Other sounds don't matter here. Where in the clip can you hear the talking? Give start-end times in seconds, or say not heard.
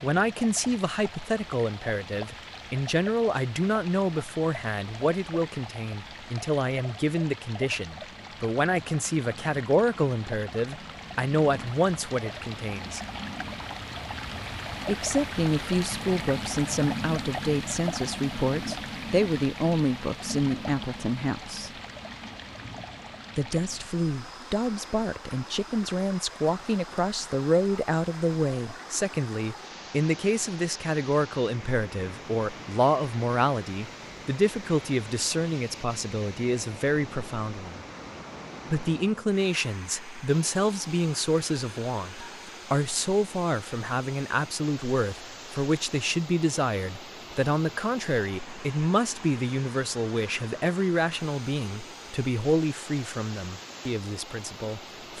0.0-13.0, 14.8-21.7, 23.4-37.8, 38.6-55.1.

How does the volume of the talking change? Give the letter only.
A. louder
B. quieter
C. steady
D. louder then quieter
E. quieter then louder
C.